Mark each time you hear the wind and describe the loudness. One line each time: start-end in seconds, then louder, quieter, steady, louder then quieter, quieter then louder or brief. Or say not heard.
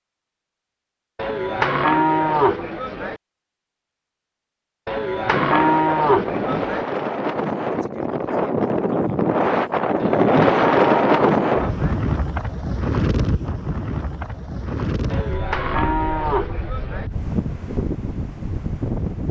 5.2-19.2 louder then quieter.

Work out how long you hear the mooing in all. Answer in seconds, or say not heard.
8 s.